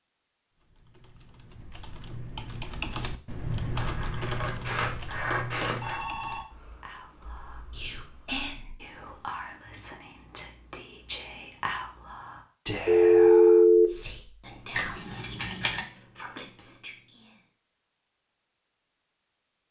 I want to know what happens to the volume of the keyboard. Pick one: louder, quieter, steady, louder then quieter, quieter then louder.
louder then quieter.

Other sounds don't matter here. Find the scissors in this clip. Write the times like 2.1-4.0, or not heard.
3.8-6.0, 14.7-15.8.